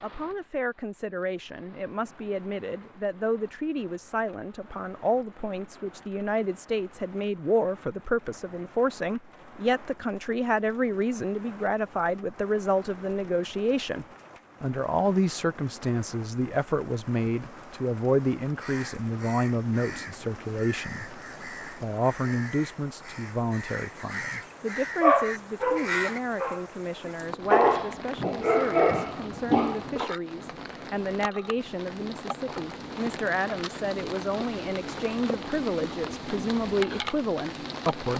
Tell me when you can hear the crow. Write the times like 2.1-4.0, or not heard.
18.4-26.2.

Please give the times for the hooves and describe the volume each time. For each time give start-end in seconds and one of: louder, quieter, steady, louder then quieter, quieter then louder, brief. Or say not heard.
not heard.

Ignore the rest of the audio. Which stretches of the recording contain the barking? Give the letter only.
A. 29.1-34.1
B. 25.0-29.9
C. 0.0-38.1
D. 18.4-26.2
B.